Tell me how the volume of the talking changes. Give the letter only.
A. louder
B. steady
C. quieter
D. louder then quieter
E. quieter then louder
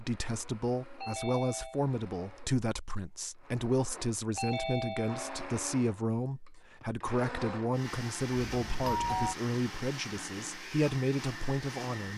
B.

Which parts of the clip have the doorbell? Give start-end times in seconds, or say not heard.
0.9-1.8, 4.3-5.5, 8.3-9.3.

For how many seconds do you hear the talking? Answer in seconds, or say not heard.
12 s.